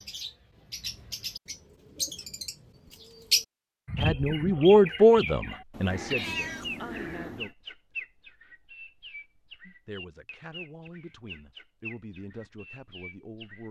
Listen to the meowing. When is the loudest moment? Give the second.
6 s.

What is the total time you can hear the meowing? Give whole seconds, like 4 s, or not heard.
2 s.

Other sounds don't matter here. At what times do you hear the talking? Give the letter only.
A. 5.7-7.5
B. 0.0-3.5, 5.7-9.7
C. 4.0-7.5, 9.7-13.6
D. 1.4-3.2
C.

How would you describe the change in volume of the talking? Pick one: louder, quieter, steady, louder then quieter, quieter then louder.
quieter.